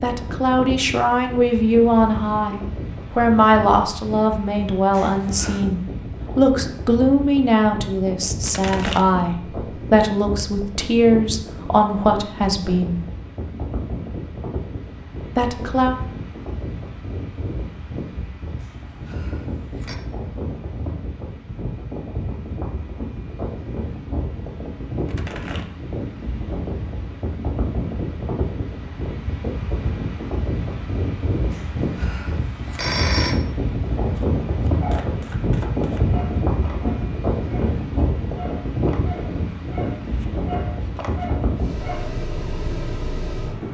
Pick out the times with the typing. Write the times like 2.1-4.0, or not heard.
not heard.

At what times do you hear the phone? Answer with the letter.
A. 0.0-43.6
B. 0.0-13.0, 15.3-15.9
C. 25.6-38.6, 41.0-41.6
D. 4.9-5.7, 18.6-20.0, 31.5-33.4
D.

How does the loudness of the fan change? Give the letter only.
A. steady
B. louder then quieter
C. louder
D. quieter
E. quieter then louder
C.